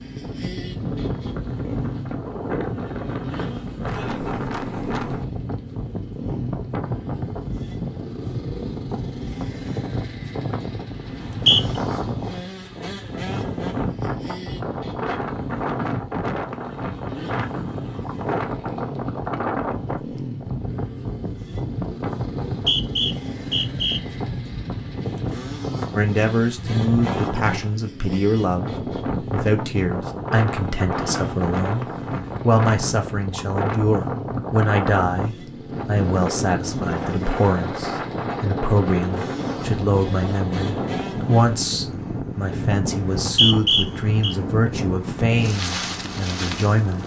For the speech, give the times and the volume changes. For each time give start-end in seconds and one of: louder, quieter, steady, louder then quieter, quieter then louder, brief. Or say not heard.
25.9-47.0 steady.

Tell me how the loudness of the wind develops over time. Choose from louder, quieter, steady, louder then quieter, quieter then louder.
steady.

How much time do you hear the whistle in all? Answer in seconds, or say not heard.
3 s.